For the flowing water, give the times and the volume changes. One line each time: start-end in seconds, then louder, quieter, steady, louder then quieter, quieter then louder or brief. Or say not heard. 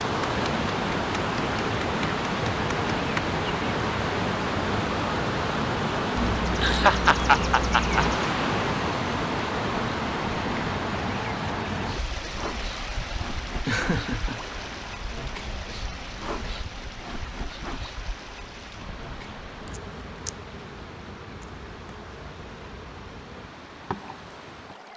0.0-24.9 quieter.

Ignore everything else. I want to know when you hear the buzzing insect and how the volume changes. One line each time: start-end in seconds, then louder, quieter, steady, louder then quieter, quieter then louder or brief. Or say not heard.
0.0-24.9 quieter.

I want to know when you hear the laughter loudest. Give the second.
7 s.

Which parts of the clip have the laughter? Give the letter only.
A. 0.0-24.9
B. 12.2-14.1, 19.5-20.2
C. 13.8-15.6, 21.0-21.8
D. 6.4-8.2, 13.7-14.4
D.